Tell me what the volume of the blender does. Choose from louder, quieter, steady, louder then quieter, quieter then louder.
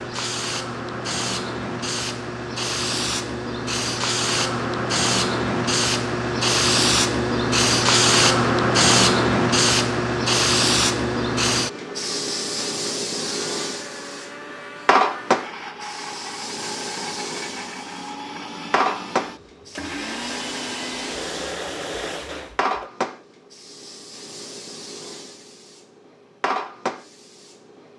louder.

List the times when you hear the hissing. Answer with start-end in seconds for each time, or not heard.
0.0-27.9.